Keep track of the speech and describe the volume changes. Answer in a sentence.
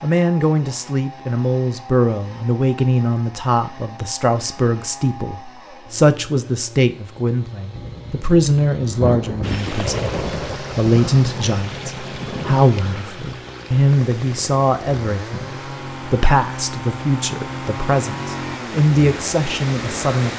The volume of the speech stays about the same.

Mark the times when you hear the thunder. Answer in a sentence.
The thunder can be heard from 7.7 to 12.7 s.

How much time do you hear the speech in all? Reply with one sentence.
You can hear the speech for 20 seconds altogether.